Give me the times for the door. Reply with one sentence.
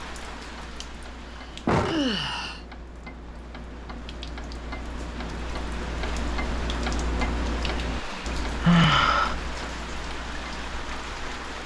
The door can be heard from 1.6 to 2.5 s.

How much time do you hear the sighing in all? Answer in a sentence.
You can hear the sighing for 3 seconds altogether.